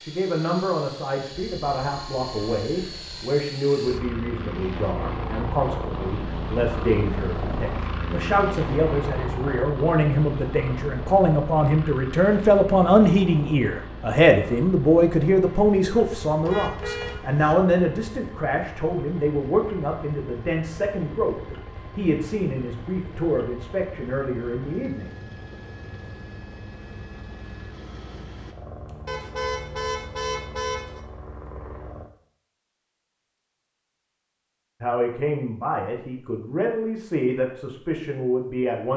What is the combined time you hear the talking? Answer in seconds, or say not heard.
29 s.